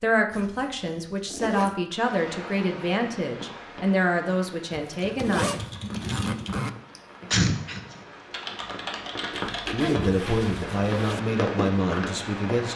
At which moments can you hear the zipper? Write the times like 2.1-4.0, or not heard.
0.3-1.8, 4.7-6.7, 9.4-11.2.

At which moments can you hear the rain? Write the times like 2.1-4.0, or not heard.
1.9-12.7.